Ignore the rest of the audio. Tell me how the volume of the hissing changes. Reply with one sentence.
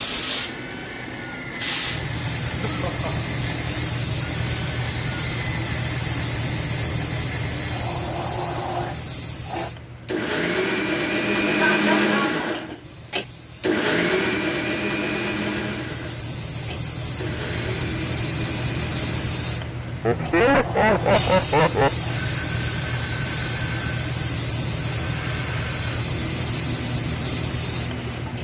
The volume of the hissing goes down, then up.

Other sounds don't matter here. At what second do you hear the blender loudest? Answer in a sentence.
The volume of the blender peaks at 12 seconds.